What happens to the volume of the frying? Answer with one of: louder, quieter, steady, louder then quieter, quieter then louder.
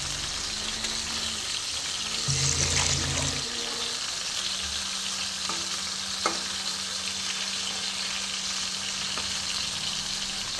steady.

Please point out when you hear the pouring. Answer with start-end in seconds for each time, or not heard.
2.2-3.5.